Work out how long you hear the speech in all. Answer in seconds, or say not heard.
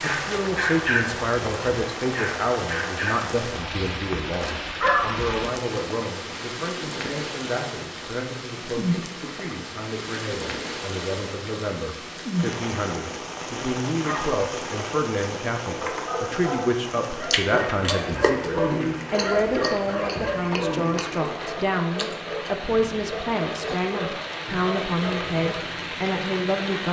27 s.